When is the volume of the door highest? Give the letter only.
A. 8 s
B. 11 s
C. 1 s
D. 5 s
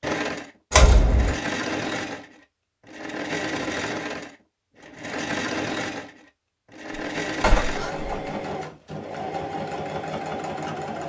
C.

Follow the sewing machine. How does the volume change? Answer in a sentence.
The loudness of the sewing machine stays about the same.